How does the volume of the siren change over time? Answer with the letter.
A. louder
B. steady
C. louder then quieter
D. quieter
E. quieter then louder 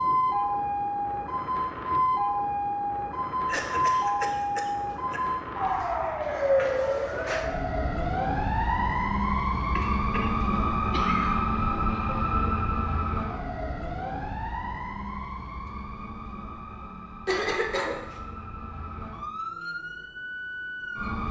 D.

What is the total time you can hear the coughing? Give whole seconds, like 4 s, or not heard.
4 s.